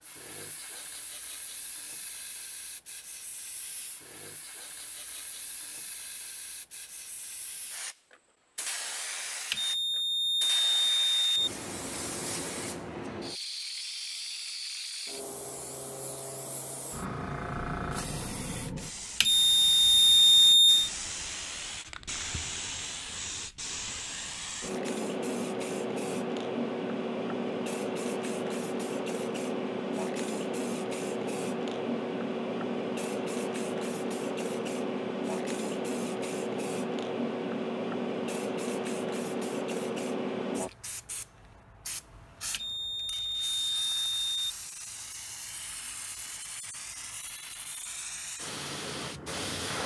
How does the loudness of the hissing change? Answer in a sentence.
The loudness of the hissing goes up, then down.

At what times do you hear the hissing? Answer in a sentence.
You can hear the hissing from 0.0 to 49.8 s.